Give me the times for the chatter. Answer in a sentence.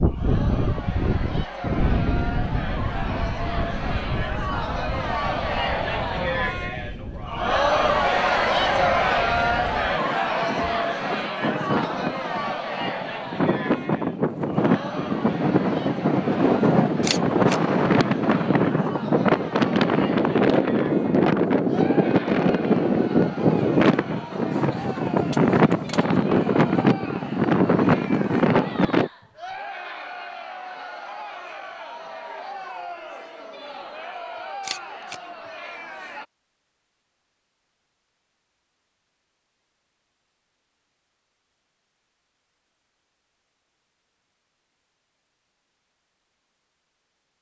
You can hear the chatter from 0.0 to 36.2 s.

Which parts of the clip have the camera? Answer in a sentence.
You can hear the camera from 17.0 to 17.6 s and from 34.6 to 35.2 s.